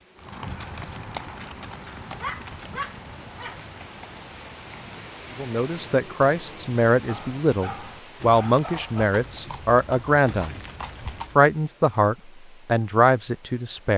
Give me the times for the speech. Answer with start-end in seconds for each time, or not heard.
5.3-10.6, 11.3-13.9.